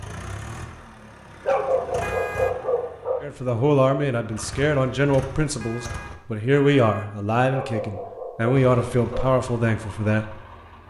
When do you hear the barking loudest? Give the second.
2 s.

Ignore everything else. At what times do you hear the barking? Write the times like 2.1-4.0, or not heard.
1.4-3.2, 7.5-9.3.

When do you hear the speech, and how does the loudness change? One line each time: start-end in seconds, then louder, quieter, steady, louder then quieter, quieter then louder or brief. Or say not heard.
3.2-10.4 steady.